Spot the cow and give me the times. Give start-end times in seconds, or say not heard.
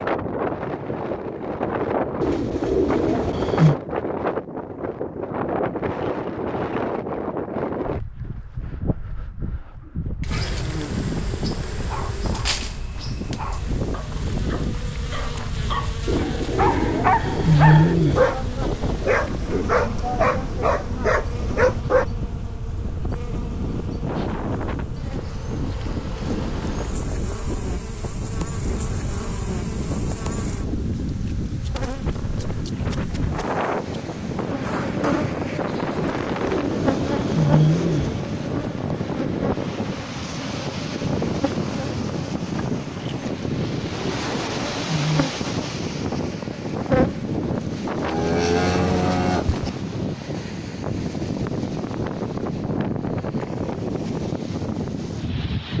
48.0-49.7.